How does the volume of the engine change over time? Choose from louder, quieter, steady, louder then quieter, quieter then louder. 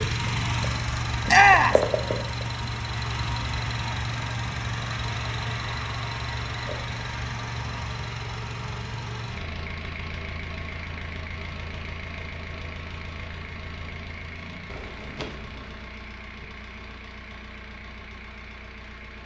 quieter.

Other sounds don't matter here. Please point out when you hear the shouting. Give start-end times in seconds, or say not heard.
1.2-1.8.